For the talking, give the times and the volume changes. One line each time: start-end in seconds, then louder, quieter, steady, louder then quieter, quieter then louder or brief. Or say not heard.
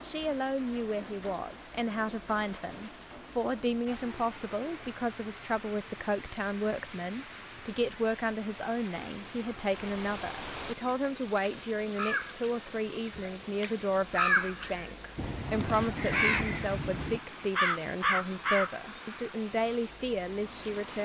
0.0-21.0 steady.